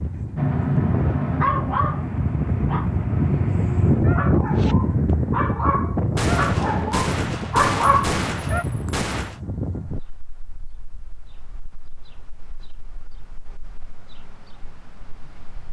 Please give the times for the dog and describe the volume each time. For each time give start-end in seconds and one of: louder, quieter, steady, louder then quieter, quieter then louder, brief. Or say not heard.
0.3-8.7 quieter then louder.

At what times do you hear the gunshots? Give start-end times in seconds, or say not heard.
6.2-9.4.